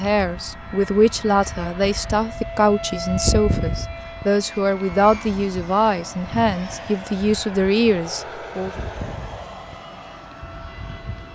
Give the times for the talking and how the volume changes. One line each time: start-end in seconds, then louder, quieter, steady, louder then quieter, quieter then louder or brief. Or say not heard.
0.0-8.8 steady.